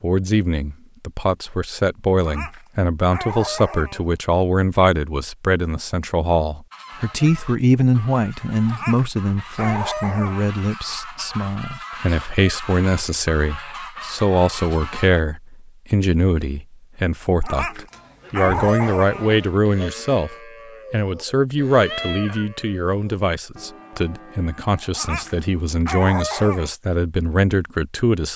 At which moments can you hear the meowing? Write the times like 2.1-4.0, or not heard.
21.8-22.5.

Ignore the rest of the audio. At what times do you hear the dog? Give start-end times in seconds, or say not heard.
2.2-4.2, 8.7-10.5, 17.4-19.4, 24.9-26.7.